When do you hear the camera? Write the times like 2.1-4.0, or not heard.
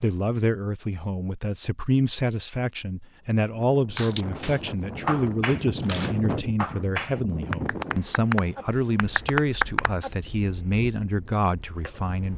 5.8-6.2.